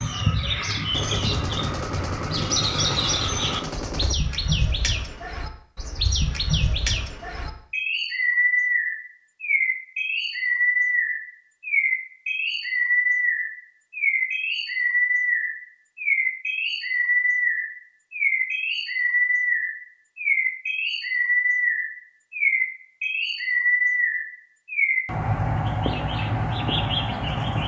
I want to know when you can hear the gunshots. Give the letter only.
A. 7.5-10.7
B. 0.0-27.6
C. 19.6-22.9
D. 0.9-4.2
D.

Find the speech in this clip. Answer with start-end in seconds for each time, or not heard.
not heard.